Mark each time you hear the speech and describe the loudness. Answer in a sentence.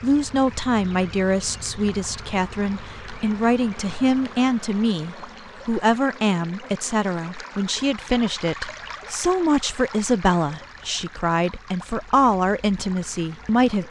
You can hear the speech from 0.0 to 13.8 s, at a steady volume.